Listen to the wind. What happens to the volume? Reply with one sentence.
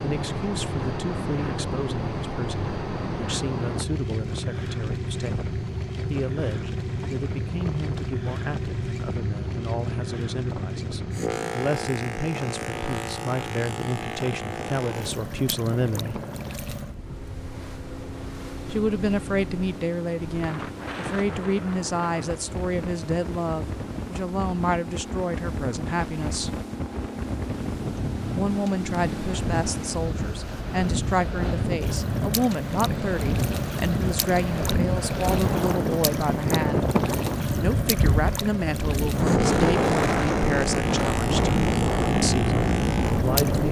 The volume of the wind goes up.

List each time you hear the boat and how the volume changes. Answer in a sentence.
The boat can be heard from 0.0 to 43.6 s, getting quieter then louder.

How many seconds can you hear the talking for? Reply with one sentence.
You can hear the talking for 38 seconds altogether.